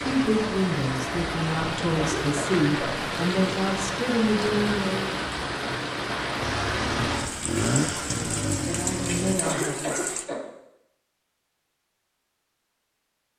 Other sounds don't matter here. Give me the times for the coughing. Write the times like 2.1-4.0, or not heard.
1.9-3.0, 9.2-10.4.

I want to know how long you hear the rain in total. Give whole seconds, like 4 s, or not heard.
10 s.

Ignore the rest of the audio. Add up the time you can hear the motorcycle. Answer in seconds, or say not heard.
3 s.